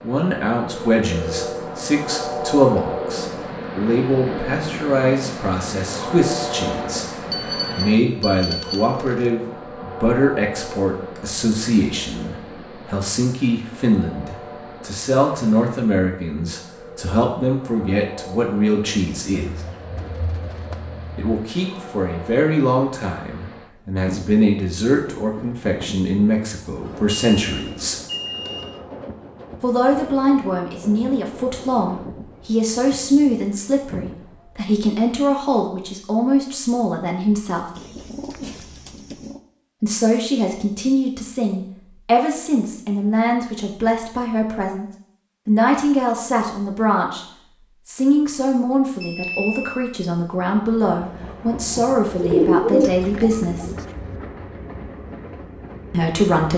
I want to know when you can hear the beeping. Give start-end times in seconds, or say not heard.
7.3-8.8, 26.9-28.8, 49.0-49.9.